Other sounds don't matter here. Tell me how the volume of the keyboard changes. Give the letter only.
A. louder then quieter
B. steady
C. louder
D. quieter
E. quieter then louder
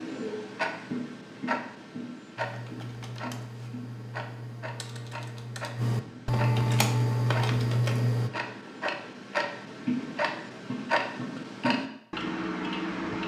C.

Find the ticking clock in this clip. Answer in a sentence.
You can hear the ticking clock from 0.0 to 13.2 s.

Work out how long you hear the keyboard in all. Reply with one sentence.
You can hear the keyboard for 6 seconds altogether.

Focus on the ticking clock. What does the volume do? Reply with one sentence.
The loudness of the ticking clock goes down, then up.